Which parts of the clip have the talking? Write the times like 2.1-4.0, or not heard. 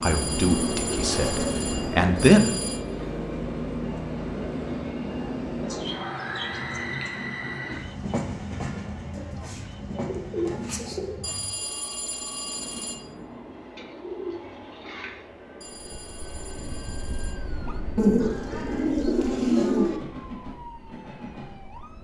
0.0-2.6.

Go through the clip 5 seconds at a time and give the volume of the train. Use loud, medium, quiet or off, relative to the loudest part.
loud, loud, medium, quiet, medium.